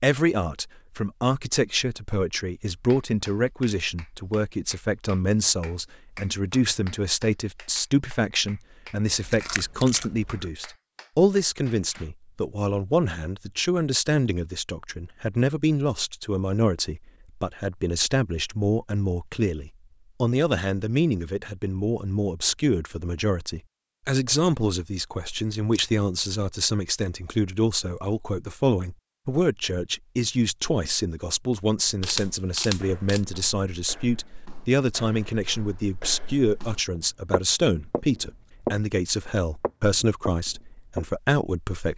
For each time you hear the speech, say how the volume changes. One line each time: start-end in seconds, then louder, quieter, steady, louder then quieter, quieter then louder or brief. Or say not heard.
0.0-41.9 steady.